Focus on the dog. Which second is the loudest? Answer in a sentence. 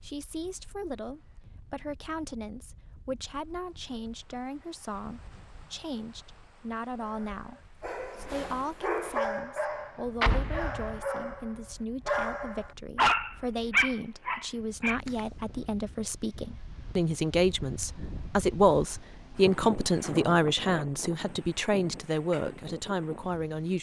The loudest moment of the dog is at 13 seconds.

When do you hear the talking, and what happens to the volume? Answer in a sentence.
The talking can be heard from 0.0 to 23.7 s, getting louder.